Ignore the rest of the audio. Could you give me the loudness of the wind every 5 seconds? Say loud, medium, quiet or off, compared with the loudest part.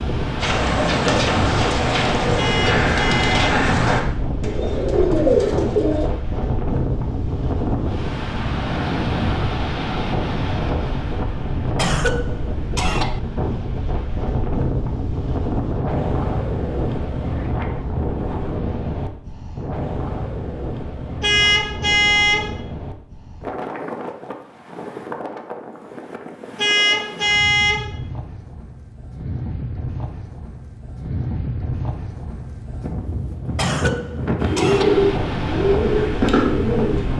loud, loud, loud, loud, medium, medium, loud, loud.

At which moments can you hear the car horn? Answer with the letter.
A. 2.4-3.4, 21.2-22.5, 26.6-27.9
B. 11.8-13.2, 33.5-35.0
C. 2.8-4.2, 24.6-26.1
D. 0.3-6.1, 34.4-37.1
A.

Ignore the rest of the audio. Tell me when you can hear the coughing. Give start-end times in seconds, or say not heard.
11.8-13.2, 33.5-35.0.